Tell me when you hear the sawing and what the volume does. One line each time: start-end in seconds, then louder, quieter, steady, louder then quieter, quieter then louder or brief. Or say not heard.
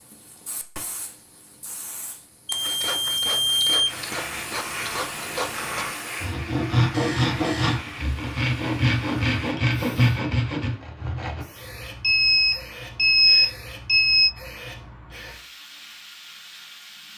2.5-11.4 louder.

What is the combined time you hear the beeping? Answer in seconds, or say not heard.
5 s.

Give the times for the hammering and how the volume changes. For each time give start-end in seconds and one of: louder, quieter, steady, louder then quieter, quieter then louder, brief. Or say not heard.
not heard.